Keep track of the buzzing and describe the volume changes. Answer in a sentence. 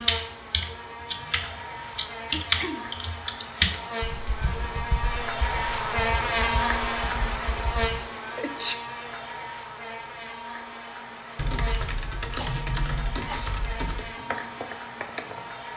The volume of the buzzing goes up, then down.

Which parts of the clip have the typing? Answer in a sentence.
The typing can be heard from 0.0 to 8.0 s and from 11.3 to 15.7 s.